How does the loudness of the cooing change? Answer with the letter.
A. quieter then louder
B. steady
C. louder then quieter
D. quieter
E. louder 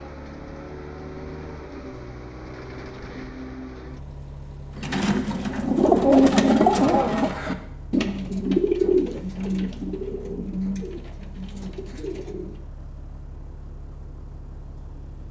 D.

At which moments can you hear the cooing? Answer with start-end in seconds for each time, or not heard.
4.8-12.6.